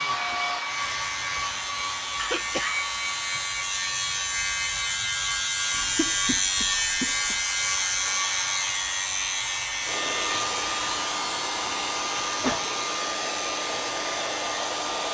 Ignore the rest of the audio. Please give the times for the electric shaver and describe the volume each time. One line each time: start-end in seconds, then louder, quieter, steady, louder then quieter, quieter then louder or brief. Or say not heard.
0.0-15.1 louder then quieter.